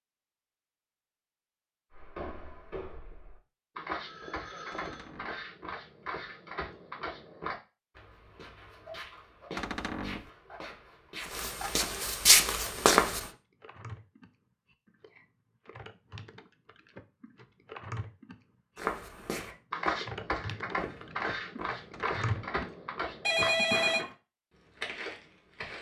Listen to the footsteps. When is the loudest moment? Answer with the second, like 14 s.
12 s.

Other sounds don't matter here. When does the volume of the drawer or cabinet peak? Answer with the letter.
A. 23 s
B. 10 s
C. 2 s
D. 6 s
B.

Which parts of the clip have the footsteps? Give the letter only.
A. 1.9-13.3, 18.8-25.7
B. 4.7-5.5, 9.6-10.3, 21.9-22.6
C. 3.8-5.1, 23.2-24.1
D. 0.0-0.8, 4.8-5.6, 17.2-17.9
A.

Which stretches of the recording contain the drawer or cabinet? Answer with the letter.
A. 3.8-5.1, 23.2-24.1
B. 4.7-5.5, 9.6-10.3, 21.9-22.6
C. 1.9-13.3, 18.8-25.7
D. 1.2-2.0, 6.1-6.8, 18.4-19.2
B.